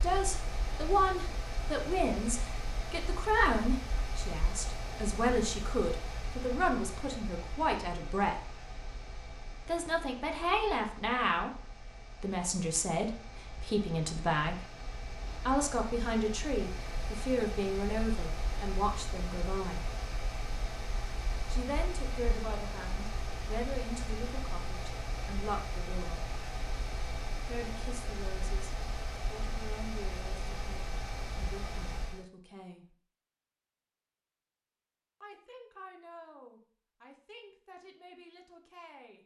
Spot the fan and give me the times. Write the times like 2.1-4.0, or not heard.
0.0-32.2.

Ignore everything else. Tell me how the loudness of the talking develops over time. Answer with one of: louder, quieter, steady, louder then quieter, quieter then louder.
quieter.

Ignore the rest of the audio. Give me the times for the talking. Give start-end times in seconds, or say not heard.
0.0-8.3, 9.7-14.7, 15.4-19.9, 21.5-26.2, 27.4-33.0, 35.2-39.2.